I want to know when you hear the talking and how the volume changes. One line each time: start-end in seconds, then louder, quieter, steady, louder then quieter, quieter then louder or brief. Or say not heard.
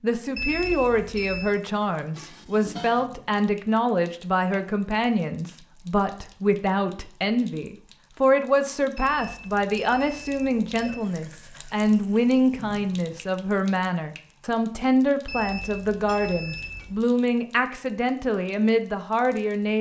0.0-19.7 steady.